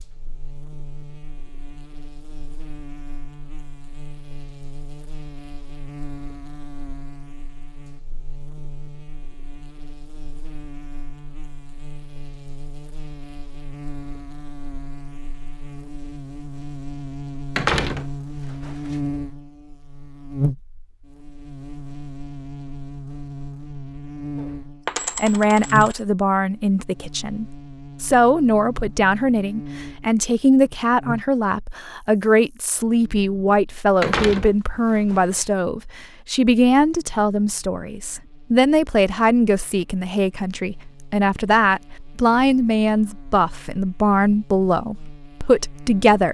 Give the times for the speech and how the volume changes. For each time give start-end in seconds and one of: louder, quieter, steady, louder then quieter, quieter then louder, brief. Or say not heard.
25.1-46.2 steady.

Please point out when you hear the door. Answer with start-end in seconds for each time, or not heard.
17.6-18.9, 34.0-35.4.